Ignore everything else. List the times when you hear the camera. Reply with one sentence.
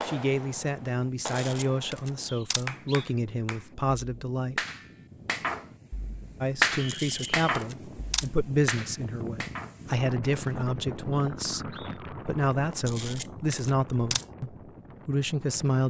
The camera can be heard from 1.2 to 2.6 s, from 6.8 to 8.3 s and from 12.8 to 14.2 s.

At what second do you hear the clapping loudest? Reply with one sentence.
The volume of the clapping peaks at 7 seconds.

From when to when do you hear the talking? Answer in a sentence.
You can hear the talking from 0.0 to 4.6 s and from 6.4 to 15.8 s.